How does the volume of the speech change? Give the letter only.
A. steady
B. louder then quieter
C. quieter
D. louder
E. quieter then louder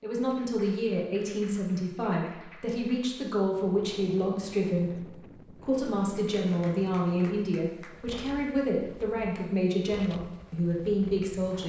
A.